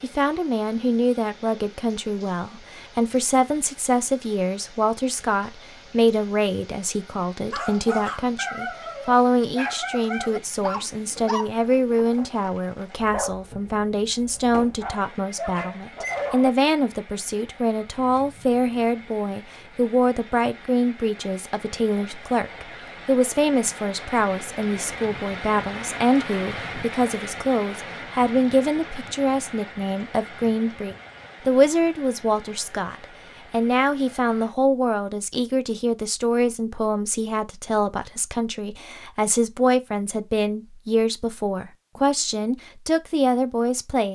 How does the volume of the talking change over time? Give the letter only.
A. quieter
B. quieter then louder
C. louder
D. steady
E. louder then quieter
D.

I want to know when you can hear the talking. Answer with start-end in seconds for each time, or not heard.
0.0-44.0.